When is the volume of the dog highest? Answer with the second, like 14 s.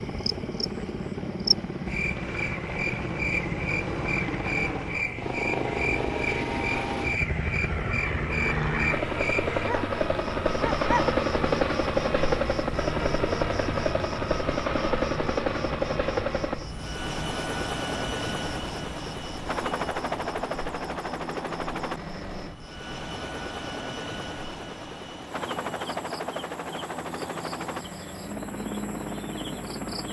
11 s.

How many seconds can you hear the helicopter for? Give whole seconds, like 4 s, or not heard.
30 s.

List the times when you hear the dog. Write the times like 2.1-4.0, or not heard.
9.7-11.2.